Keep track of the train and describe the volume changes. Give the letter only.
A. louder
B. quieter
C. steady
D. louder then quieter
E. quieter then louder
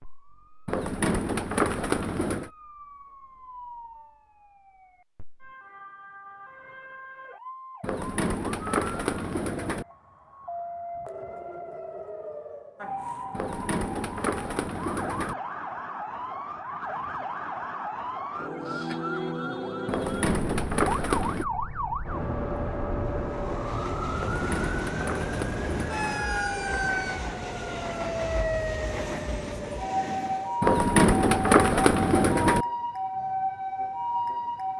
C.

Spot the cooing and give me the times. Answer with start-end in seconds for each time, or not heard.
0.7-2.5, 7.8-9.8, 13.3-15.3, 19.9-21.4, 24.1-26.2, 30.6-32.6.